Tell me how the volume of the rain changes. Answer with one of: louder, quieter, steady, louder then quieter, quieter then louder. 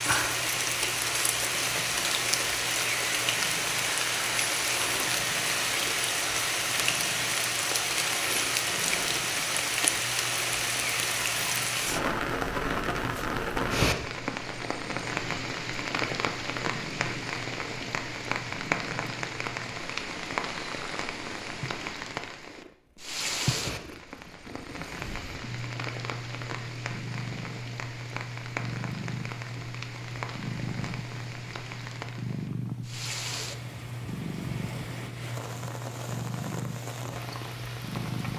quieter.